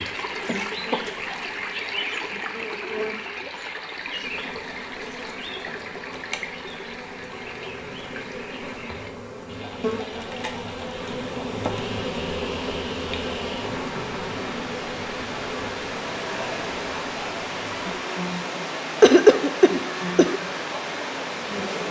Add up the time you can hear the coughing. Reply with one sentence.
You can hear the coughing for 2 seconds altogether.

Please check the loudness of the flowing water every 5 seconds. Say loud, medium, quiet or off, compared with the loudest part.
loud, medium, medium, loud, loud.